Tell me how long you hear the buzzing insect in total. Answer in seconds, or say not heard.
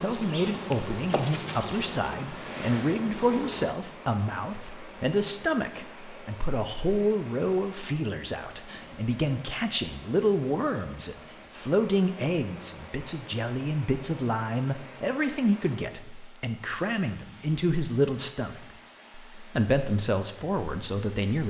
4 s.